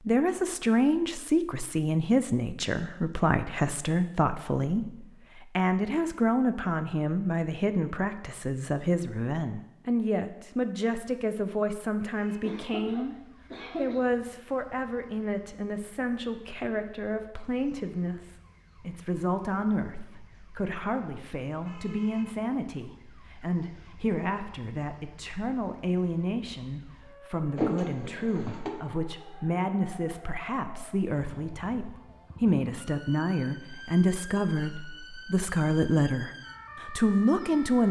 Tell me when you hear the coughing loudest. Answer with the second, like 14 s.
28 s.